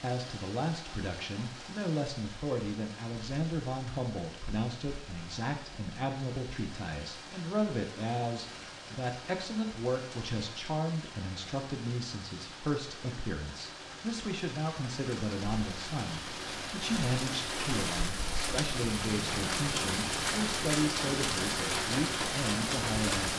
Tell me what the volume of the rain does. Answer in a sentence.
The loudness of the rain goes up.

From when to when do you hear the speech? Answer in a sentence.
You can hear the speech from 0.0 to 23.3 s.